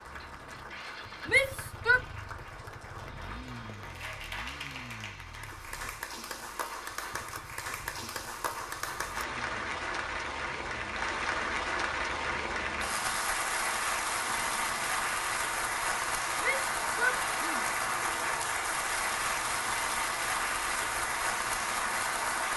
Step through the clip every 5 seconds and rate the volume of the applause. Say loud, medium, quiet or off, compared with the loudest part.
quiet, medium, loud, loud, loud.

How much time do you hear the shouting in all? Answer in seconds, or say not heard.
2 s.